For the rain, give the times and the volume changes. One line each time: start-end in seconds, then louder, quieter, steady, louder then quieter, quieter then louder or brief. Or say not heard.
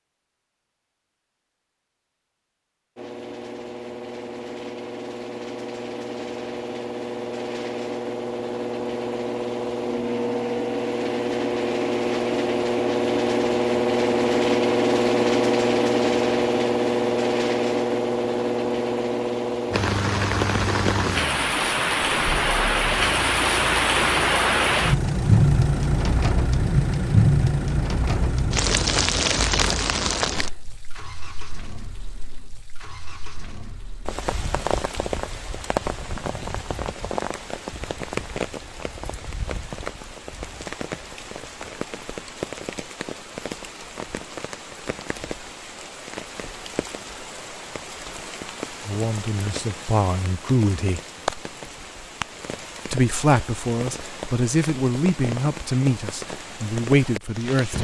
19.7-57.7 quieter.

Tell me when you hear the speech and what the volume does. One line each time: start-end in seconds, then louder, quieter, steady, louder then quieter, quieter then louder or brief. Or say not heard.
48.9-51.0 brief
52.9-57.7 steady.